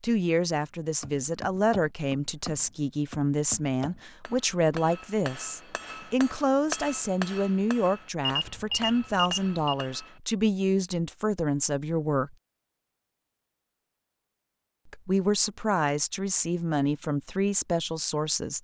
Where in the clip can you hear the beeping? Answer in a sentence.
The beeping can be heard from 8.2 to 9.9 s.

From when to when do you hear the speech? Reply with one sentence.
You can hear the speech from 0.0 to 12.3 s and from 14.8 to 18.5 s.